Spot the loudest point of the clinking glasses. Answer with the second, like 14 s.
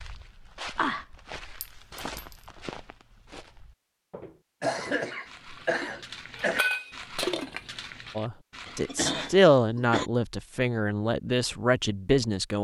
7 s.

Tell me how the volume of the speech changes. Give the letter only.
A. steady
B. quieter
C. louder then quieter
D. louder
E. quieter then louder
C.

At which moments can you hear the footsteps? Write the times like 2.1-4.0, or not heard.
0.0-8.9.